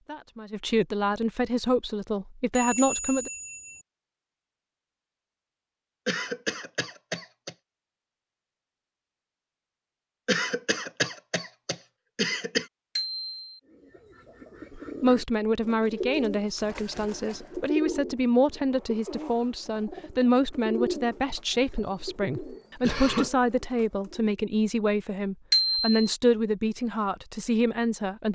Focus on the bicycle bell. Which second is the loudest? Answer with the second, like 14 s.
26 s.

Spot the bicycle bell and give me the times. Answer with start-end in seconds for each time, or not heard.
2.5-3.9, 12.9-13.4, 25.5-26.1.